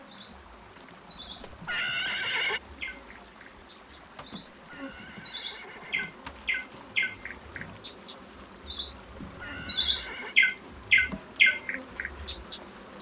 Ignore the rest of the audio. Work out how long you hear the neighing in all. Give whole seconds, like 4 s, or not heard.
4 s.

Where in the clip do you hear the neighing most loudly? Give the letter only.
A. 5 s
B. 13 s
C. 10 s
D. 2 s
D.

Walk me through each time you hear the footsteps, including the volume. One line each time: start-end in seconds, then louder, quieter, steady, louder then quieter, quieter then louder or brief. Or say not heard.
not heard.